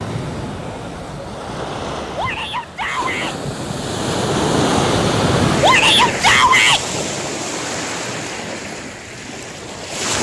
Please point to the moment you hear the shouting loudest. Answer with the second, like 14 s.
6 s.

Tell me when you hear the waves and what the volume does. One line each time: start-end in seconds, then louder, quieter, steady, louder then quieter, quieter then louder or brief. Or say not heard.
0.0-10.1 louder then quieter.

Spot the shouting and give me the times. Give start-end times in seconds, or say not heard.
2.1-3.4, 5.6-6.8.